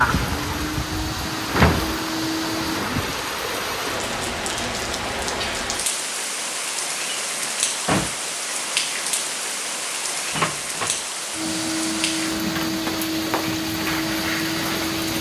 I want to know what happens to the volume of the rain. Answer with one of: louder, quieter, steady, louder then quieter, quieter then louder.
steady.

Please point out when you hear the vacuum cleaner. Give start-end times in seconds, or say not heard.
0.0-2.9, 11.3-15.1.